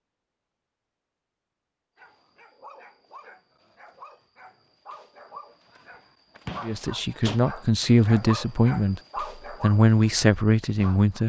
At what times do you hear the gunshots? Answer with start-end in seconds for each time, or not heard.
6.5-7.5.